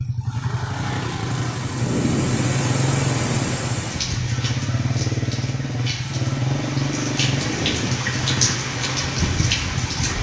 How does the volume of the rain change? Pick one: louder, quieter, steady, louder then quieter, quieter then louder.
quieter then louder.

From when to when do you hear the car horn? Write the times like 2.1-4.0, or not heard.
not heard.